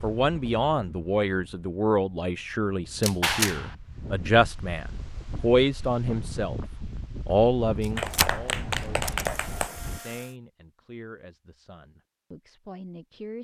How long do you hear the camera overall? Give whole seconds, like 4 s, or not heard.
3 s.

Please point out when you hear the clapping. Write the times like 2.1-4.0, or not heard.
3.2-3.8, 8.0-9.8.